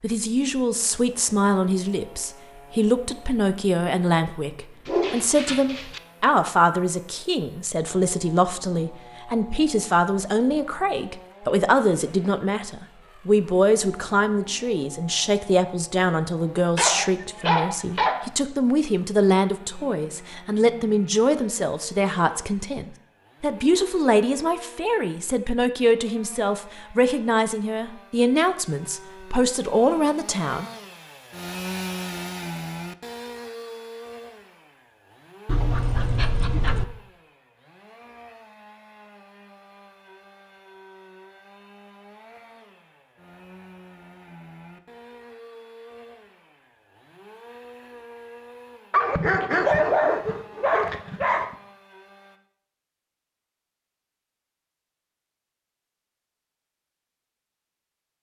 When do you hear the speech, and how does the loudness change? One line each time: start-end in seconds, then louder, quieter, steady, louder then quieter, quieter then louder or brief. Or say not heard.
0.0-30.6 steady.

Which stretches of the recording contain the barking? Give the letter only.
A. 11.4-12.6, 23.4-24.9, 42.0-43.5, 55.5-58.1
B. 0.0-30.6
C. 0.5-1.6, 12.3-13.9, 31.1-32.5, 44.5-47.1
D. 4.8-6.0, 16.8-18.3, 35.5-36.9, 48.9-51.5
D.